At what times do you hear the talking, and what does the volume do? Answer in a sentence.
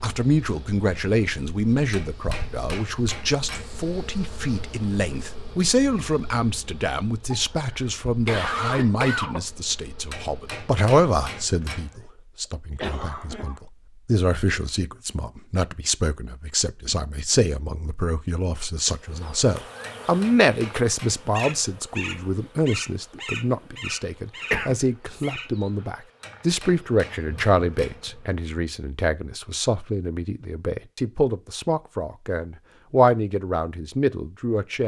You can hear the talking from 0.0 to 34.8 s, at a steady volume.